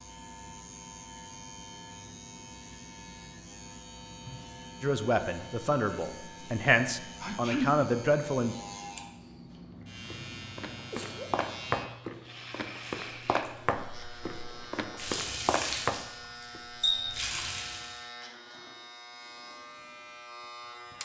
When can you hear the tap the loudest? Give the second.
17 s.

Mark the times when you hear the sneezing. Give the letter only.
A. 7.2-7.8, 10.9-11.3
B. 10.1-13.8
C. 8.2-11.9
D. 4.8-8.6
A.